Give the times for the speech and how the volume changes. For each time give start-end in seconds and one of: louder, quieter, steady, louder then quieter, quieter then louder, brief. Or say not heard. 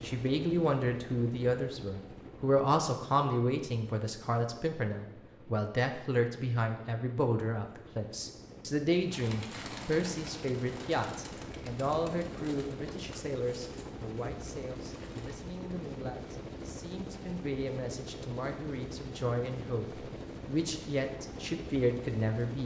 0.0-22.6 quieter then louder.